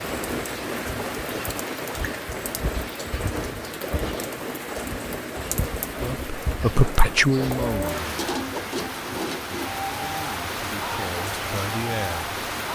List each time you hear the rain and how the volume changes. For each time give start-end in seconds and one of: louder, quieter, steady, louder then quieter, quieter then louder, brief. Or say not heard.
0.0-12.7 steady.